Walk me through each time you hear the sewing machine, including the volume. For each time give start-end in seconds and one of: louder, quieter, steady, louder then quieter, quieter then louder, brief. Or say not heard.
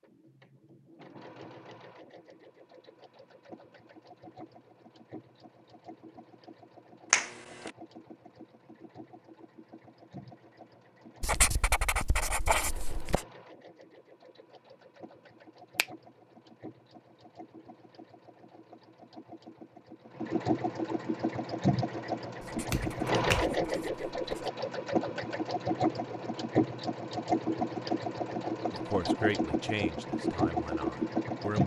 0.0-31.6 louder.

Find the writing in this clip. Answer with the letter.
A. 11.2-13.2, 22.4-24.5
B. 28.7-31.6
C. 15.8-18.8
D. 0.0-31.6
A.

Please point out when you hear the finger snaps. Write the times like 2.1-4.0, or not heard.
7.1-7.7, 22.7-23.6.